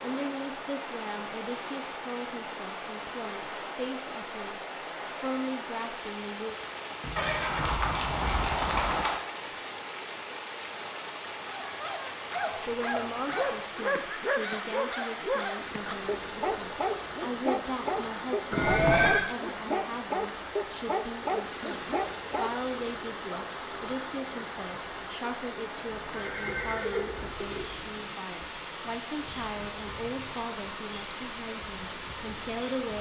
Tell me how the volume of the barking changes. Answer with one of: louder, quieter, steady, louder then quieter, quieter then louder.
steady.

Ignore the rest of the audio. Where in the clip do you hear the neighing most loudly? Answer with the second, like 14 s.
19 s.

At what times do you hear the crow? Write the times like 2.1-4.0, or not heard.
not heard.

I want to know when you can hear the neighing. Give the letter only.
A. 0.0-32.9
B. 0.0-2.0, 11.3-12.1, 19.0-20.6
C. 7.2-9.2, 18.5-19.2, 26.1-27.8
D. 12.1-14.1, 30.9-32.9
C.